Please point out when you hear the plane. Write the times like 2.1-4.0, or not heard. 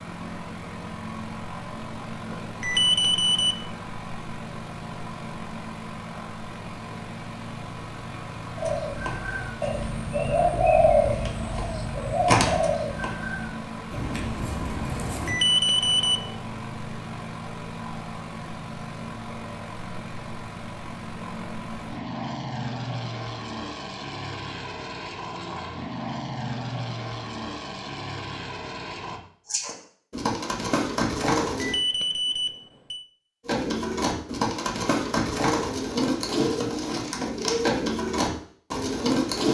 0.0-29.2.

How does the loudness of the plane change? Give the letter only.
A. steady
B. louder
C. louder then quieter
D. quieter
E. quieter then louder
A.